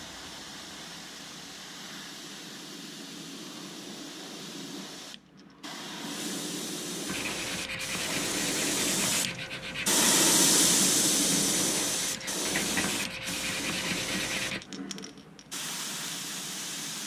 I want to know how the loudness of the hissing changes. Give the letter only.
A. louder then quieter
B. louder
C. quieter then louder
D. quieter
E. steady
A.